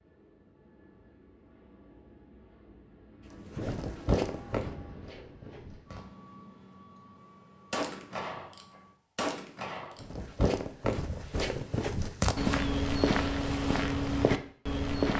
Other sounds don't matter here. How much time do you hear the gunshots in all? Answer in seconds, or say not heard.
2 s.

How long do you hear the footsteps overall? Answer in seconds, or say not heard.
8 s.